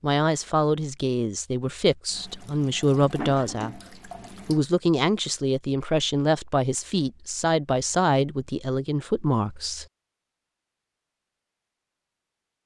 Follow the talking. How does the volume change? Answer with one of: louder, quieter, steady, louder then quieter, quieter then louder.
steady.